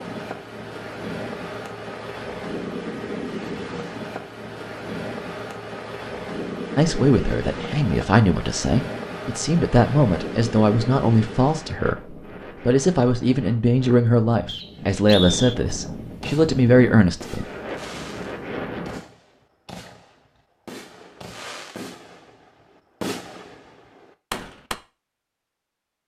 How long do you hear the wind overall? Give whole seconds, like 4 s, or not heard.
19 s.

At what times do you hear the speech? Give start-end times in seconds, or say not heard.
6.8-17.4.